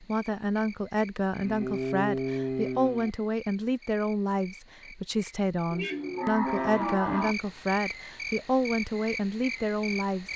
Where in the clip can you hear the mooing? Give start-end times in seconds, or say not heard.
1.4-3.1, 5.7-7.3.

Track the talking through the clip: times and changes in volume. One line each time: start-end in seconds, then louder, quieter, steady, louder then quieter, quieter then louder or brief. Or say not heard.
0.0-10.3 steady.